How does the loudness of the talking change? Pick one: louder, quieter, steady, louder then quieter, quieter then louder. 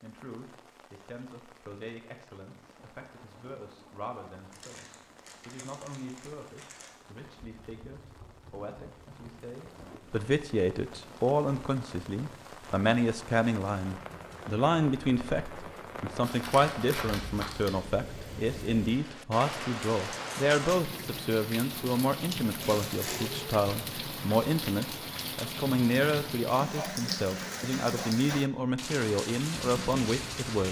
louder.